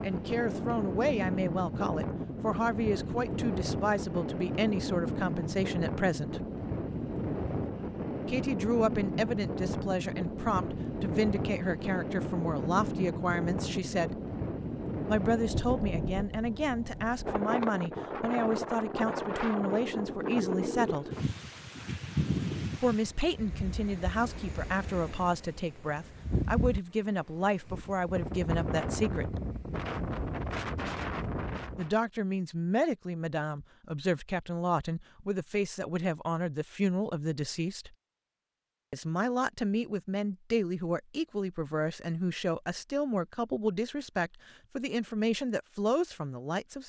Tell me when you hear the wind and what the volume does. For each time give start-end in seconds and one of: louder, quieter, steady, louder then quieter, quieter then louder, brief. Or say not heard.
0.0-31.9 steady.